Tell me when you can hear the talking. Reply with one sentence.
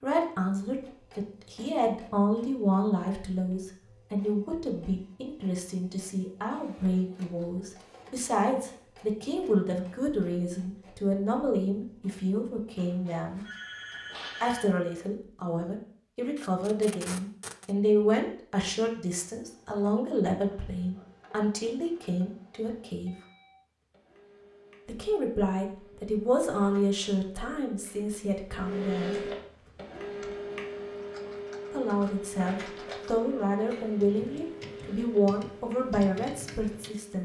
The talking can be heard from 0.0 to 13.4 s, from 14.4 to 23.1 s, from 24.9 to 29.2 s and from 31.7 to 37.1 s.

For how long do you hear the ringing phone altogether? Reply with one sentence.
You can hear the ringing phone for 2 seconds altogether.